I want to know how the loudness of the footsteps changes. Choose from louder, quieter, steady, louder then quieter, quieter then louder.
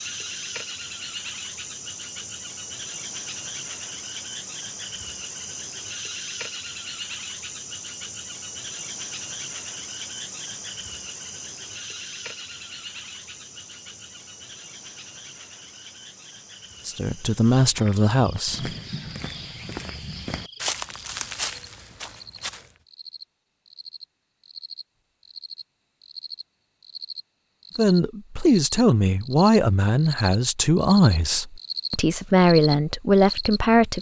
louder then quieter.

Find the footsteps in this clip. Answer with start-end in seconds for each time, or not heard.
17.6-22.8.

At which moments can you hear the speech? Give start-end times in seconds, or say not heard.
16.9-18.7, 27.8-33.9.